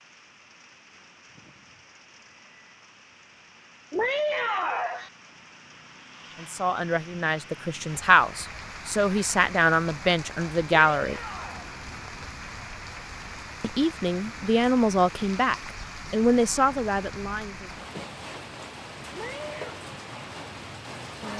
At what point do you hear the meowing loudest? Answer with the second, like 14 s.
4 s.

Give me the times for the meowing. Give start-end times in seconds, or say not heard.
3.9-5.1, 10.9-11.7, 19.1-19.8.